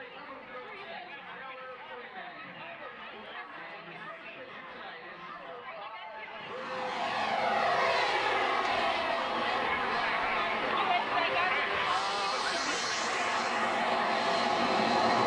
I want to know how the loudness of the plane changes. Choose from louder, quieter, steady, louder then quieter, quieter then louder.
quieter then louder.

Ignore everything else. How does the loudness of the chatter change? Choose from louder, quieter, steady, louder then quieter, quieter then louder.
louder.